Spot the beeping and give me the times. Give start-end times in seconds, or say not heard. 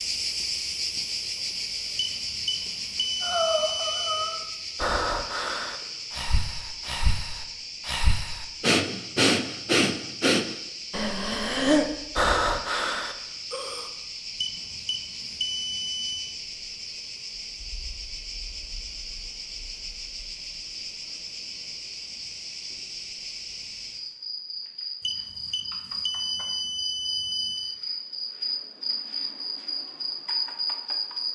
1.9-4.4, 14.4-16.4, 25.0-27.8.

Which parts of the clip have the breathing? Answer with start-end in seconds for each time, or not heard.
3.2-13.9.